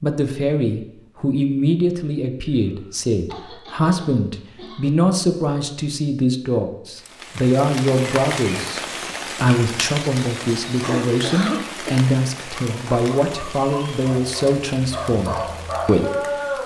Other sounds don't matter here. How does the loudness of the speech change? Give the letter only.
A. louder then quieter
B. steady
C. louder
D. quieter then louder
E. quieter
B.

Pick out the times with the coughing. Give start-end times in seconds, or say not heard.
2.6-4.9, 10.8-12.1.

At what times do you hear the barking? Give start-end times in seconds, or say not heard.
12.5-16.6.